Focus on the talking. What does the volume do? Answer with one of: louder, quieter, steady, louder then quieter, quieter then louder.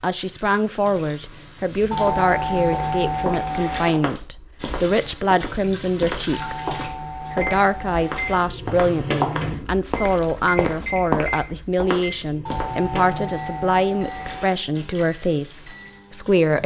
steady.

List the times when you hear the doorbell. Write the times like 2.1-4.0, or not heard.
1.9-3.9, 6.3-8.3, 12.4-14.4.